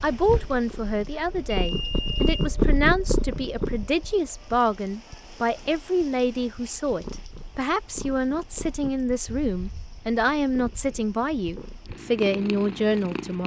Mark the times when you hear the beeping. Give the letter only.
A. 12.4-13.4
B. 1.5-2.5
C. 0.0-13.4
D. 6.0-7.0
B.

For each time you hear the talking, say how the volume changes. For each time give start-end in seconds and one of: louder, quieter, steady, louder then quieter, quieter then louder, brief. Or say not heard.
0.0-13.4 steady.